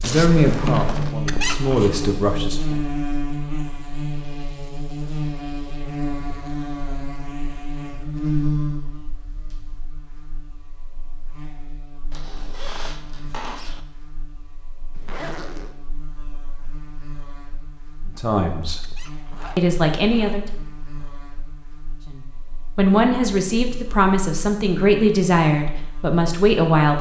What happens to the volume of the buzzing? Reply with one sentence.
The loudness of the buzzing goes down.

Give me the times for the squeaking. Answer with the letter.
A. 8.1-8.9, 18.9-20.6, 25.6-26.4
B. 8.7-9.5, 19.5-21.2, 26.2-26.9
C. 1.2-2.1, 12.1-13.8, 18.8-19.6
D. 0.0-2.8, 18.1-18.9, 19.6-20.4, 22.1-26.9
C.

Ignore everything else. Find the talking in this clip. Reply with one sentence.
The talking can be heard from 0.0 to 2.8 s, from 18.1 to 18.9 s, from 19.6 to 20.4 s and from 22.1 to 26.9 s.